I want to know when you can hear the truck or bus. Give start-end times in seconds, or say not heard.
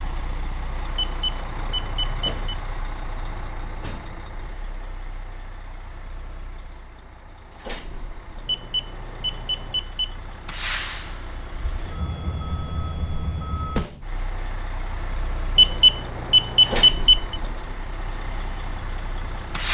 0.0-19.6.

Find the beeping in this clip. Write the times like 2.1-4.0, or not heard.
0.9-2.3, 8.4-10.1, 15.6-17.4.